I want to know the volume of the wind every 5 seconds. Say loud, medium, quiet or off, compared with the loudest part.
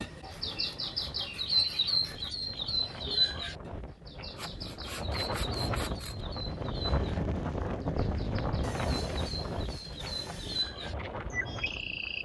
quiet, loud, medium.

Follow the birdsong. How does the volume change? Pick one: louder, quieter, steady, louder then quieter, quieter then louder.
quieter then louder.